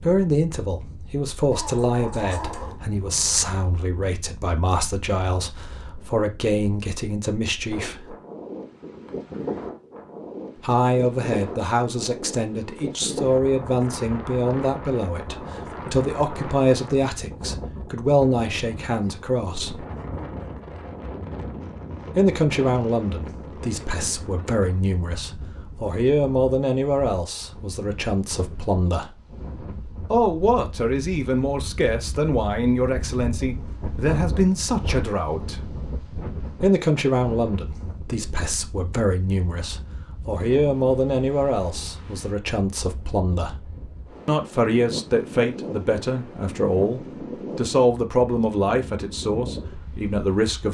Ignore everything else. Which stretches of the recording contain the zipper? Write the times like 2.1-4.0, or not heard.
not heard.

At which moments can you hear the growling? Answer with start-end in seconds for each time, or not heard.
1.5-2.8.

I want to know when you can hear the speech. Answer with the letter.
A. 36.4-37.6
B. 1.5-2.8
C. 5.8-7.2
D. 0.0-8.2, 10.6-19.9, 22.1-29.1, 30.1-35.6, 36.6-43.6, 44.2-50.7
D.